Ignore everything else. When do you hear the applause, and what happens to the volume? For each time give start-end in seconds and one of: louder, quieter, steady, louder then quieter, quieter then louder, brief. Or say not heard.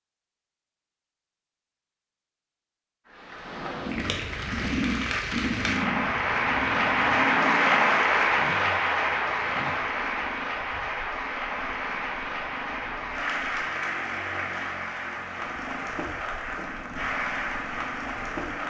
3.0-18.6 louder then quieter.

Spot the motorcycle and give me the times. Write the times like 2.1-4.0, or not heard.
3.8-18.6.